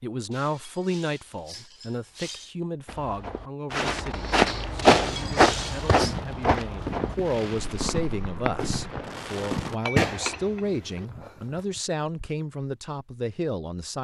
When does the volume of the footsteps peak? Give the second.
5 s.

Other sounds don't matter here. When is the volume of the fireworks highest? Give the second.
10 s.